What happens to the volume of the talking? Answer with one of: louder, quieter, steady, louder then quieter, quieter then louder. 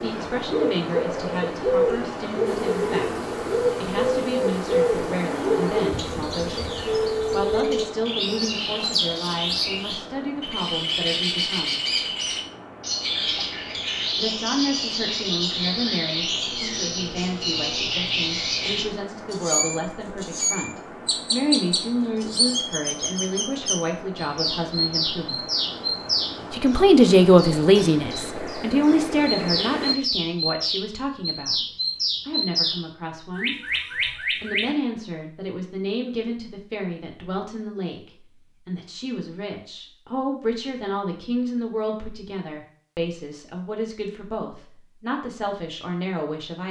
louder then quieter.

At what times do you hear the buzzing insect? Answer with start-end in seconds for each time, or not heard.
2.5-7.7.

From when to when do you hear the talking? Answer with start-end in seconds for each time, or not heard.
0.0-11.8, 14.2-25.4, 26.5-31.6, 32.2-46.6.